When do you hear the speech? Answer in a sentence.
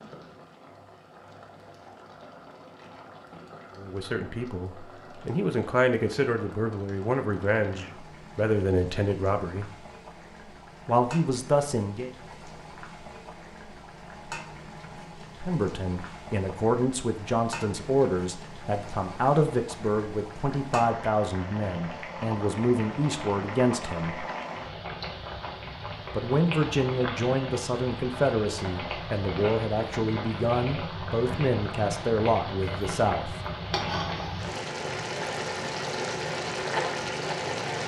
The speech can be heard from 3.8 to 9.7 s, from 10.8 to 12.1 s, from 15.4 to 24.2 s and from 26.1 to 33.4 s.